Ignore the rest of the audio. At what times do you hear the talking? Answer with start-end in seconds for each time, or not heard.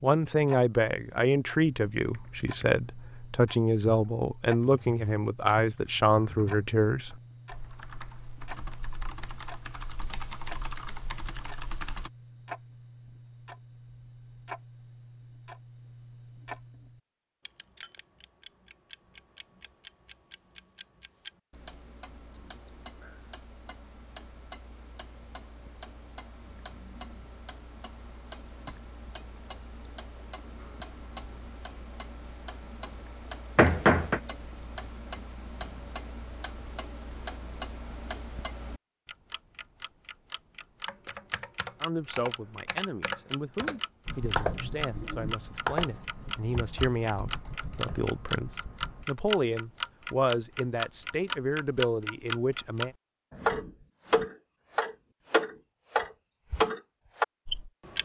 0.0-7.2, 41.8-53.0.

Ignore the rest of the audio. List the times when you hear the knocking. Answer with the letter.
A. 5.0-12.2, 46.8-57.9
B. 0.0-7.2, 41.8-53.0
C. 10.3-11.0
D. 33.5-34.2
D.